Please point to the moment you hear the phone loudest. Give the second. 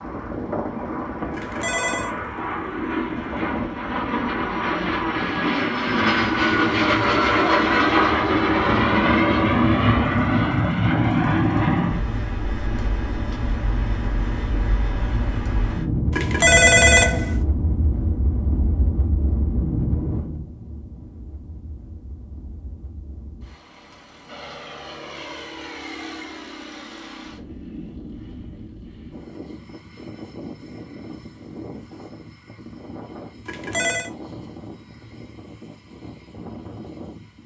17 s.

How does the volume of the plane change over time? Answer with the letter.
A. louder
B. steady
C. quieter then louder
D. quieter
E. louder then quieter
D.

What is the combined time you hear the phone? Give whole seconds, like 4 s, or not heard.
3 s.